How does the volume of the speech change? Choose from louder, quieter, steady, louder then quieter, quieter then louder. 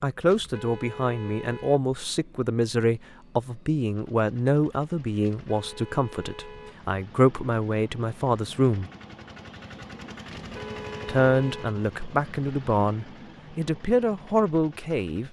steady.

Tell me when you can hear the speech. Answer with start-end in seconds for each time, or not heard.
0.0-8.8, 11.1-15.2.